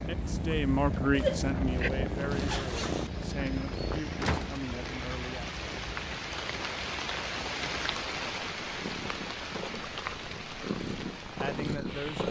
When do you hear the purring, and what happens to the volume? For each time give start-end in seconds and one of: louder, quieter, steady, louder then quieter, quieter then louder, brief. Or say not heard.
0.0-12.2 quieter then louder.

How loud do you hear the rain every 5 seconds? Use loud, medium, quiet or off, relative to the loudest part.
medium, loud, medium.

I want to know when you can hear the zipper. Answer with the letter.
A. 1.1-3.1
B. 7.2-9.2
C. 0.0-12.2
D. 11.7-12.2
A.